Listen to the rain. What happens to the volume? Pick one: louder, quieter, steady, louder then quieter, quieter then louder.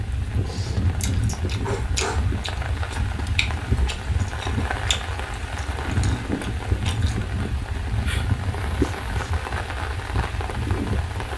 steady.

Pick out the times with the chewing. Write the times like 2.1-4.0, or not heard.
0.5-7.2.